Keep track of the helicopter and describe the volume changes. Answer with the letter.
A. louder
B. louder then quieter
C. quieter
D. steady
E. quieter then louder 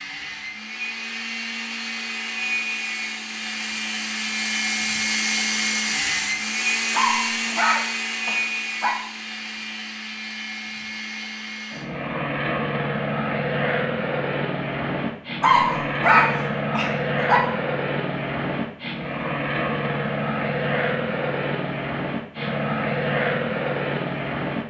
D.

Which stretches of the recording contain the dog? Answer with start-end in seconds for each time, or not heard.
6.9-8.9, 15.4-17.4.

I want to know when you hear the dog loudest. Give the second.
16 s.